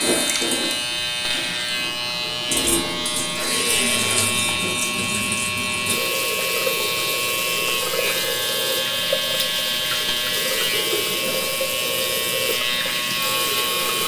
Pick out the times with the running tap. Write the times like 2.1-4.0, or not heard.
0.0-14.0.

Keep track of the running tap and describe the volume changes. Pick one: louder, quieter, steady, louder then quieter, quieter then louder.
steady.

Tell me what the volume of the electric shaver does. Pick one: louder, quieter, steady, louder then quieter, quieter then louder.
steady.